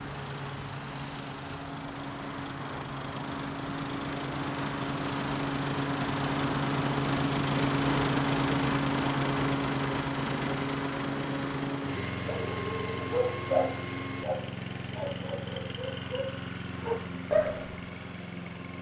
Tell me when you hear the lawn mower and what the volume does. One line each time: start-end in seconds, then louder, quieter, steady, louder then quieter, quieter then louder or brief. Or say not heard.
0.0-18.7 louder then quieter.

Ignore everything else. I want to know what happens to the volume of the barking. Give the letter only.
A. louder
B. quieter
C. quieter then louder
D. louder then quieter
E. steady
C.